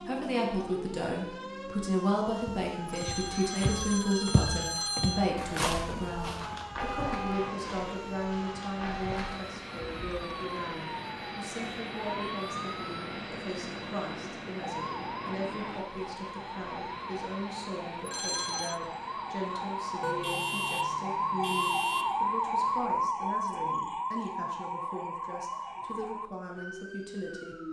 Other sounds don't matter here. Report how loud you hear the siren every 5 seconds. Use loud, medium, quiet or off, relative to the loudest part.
medium, medium, medium, medium, loud, medium.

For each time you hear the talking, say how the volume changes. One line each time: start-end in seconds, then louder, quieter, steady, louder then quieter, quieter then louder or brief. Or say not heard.
0.0-27.6 quieter.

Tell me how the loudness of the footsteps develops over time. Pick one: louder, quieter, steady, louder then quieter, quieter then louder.
quieter.